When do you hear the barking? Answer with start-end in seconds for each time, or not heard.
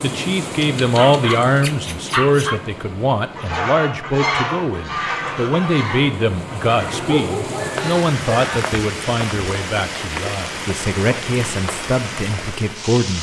0.6-2.6, 6.9-8.5.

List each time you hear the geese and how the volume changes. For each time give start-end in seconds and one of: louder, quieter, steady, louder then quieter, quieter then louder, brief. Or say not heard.
3.1-8.8 quieter.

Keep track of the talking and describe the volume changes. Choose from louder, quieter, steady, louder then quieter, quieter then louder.
quieter.